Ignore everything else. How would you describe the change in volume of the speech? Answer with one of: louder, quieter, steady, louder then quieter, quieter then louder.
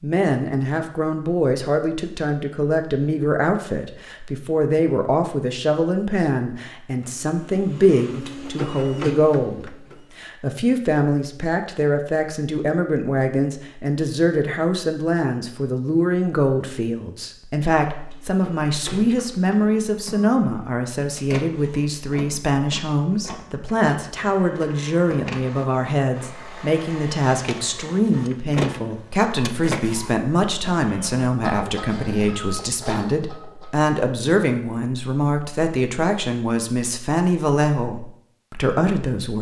steady.